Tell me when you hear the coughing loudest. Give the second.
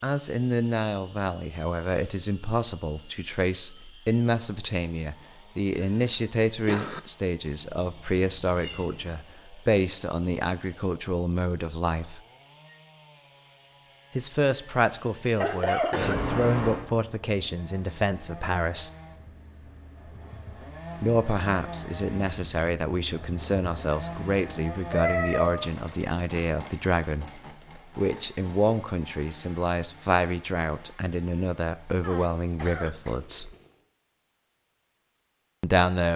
16 s.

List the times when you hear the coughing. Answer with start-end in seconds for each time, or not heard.
5.8-7.0, 15.4-16.2, 32.0-33.2.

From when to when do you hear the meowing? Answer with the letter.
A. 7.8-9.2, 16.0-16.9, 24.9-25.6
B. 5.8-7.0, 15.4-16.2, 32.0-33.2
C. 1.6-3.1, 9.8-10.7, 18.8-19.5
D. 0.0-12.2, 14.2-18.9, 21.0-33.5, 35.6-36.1
A.